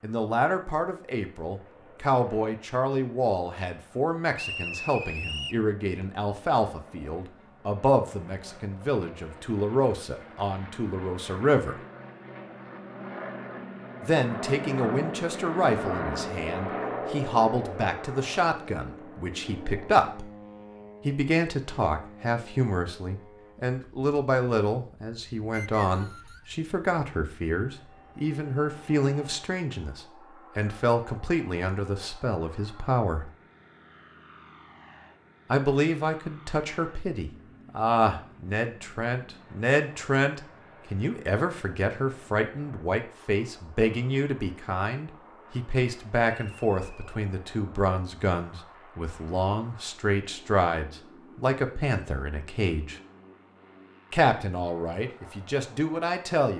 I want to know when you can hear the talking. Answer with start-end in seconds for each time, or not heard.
0.0-11.8, 14.0-20.3, 21.1-33.3, 35.5-53.0, 54.1-56.5.